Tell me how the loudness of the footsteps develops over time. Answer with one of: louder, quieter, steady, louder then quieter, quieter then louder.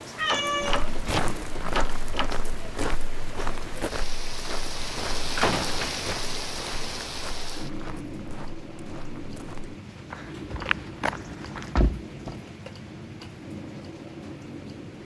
quieter then louder.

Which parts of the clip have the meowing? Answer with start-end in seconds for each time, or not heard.
0.1-1.8.